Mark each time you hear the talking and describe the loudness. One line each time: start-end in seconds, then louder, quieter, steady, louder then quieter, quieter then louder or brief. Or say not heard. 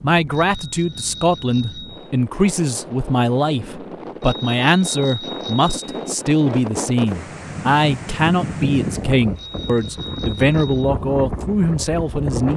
0.0-12.5 steady.